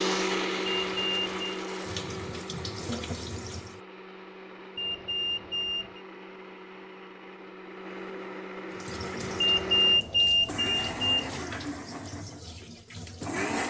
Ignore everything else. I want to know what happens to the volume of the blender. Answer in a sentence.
The loudness of the blender goes down, then up.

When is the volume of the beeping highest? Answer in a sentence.
The volume of the beeping peaks at 10 seconds.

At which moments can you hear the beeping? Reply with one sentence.
The beeping can be heard from 0.7 to 1.6 s, from 4.8 to 6.0 s and from 9.4 to 11.3 s.